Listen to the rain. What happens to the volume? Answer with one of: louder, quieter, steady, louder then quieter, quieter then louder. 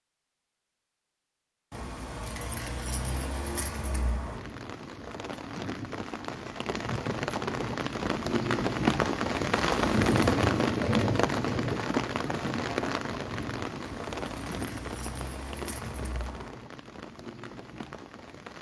louder then quieter.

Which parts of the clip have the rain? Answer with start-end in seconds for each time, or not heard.
4.3-18.5.